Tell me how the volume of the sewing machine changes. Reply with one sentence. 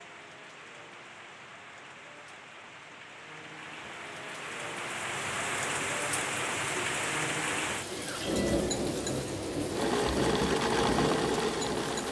The loudness of the sewing machine goes up.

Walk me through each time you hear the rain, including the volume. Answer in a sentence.
You can hear the rain from 0.0 to 12.0 s, getting louder.